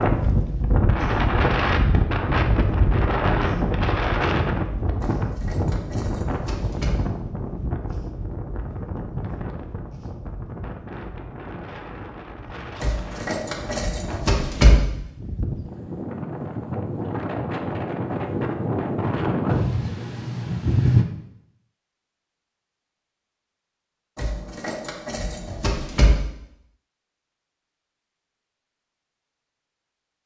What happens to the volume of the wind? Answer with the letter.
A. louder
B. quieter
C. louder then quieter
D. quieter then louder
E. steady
D.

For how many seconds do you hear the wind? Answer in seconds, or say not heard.
21 s.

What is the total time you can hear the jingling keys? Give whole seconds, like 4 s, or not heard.
6 s.